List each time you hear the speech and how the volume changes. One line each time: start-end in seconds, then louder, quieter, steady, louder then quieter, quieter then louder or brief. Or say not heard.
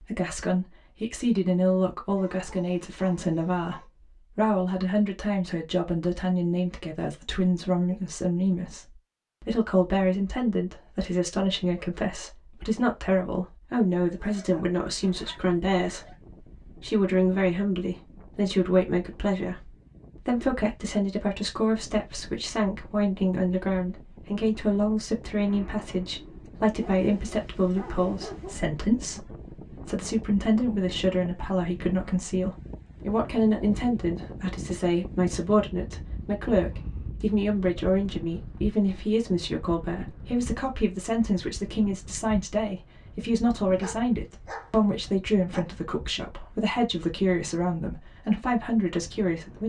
0.0-49.6 steady.